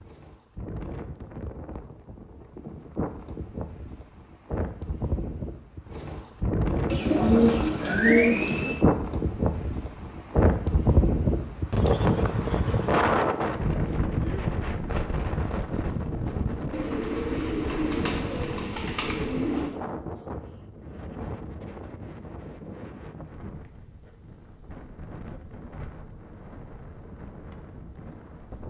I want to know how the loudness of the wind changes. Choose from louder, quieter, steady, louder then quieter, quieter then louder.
louder then quieter.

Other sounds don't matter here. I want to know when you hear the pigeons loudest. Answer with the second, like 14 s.
8 s.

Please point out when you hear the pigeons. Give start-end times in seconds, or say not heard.
6.9-8.8, 16.7-19.8.